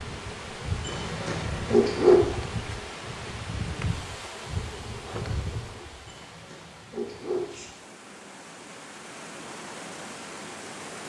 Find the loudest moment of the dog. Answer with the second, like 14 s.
2 s.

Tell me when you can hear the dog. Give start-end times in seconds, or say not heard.
0.8-2.2, 6.0-7.8.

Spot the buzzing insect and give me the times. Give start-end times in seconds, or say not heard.
0.0-6.1.